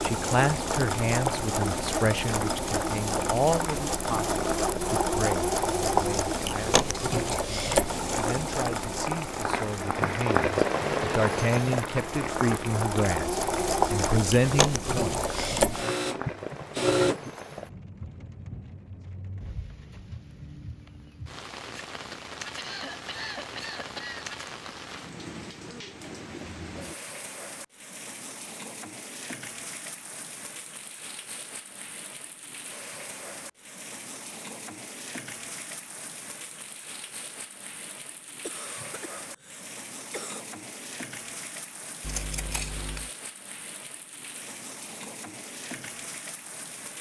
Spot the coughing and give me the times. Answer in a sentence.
The coughing can be heard from 7.1 to 7.5 s, from 22.6 to 24.3 s and from 38.4 to 40.4 s.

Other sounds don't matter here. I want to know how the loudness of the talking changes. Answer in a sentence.
The loudness of the talking goes down, then up.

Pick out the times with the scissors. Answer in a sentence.
You can hear the scissors from 42.0 to 43.1 s.